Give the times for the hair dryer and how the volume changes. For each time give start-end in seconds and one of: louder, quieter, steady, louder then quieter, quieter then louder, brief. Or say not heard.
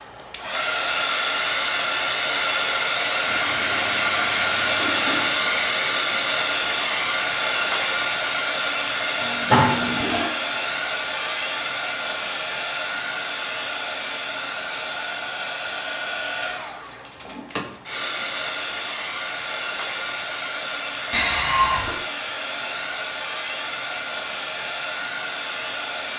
0.0-26.1 quieter.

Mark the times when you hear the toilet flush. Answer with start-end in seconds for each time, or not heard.
3.2-5.3, 9.2-10.3, 21.1-22.0.